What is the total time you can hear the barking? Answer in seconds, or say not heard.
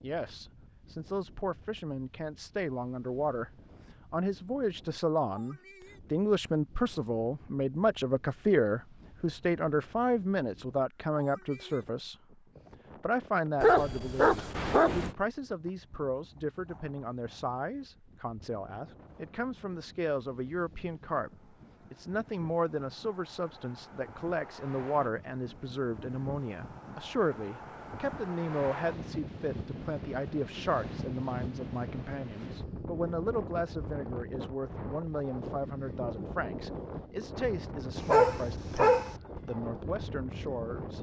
3 s.